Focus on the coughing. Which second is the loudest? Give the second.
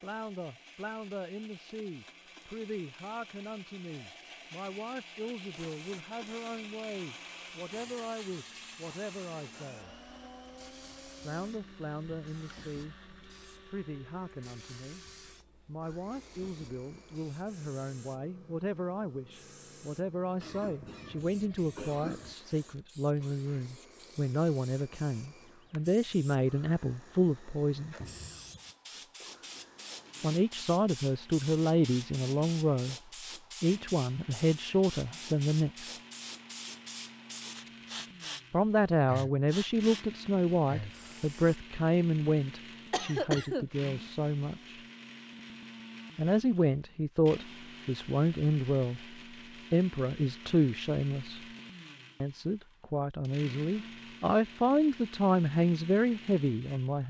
43 s.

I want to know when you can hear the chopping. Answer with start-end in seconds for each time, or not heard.
not heard.